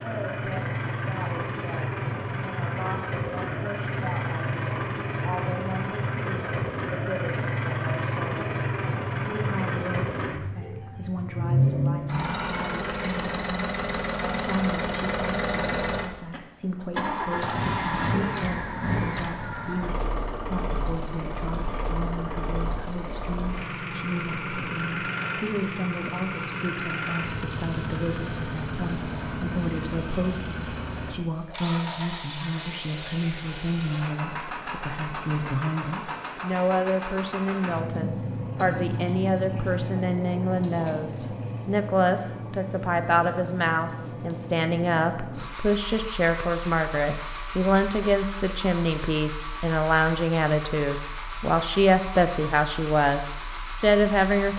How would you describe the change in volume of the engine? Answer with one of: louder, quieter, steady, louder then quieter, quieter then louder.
quieter.